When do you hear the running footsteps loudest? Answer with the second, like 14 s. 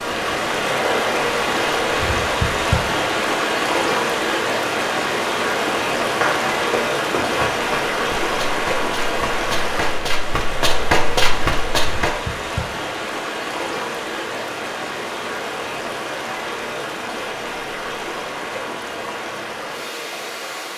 11 s.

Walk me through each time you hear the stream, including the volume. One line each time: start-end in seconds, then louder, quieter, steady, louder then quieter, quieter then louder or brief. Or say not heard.
0.0-20.7 quieter.